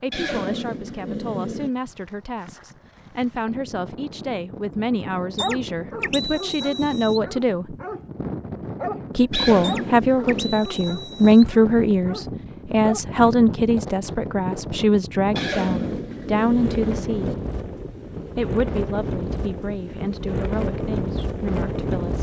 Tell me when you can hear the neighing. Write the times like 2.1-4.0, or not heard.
0.1-1.7, 9.3-10.7, 15.3-17.4.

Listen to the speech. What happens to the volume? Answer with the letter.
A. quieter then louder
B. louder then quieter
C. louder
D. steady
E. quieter
B.